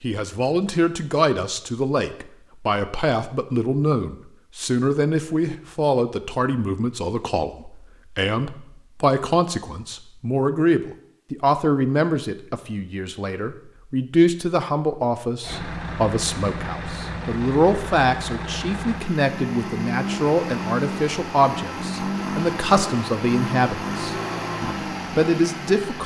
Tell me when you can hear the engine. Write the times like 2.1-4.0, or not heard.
15.4-26.0.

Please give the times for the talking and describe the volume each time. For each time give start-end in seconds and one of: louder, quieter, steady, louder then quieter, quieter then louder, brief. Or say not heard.
0.0-26.0 steady.